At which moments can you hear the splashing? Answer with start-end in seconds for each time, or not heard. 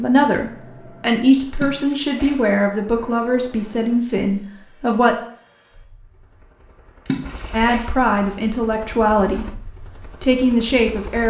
1.6-2.4, 7.0-7.9.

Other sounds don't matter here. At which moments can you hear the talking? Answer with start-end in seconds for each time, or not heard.
0.0-5.2, 7.5-11.2.